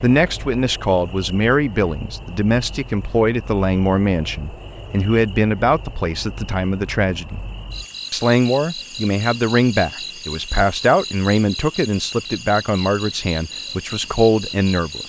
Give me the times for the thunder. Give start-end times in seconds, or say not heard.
not heard.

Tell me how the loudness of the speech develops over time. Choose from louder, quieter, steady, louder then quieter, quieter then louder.
steady.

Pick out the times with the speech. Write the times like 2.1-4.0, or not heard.
0.0-7.5, 8.1-15.0.